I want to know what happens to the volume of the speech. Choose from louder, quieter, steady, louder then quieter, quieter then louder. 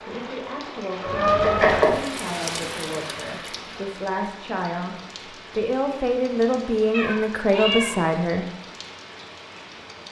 louder.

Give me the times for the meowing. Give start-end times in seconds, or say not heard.
1.1-1.9, 6.9-8.1.